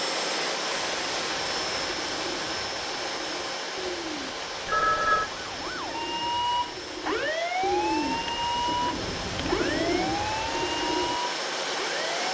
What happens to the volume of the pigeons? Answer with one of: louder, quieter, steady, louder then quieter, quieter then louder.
louder.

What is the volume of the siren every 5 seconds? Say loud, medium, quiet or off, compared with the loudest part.
off, loud, loud.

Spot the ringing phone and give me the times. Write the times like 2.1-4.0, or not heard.
4.7-5.3.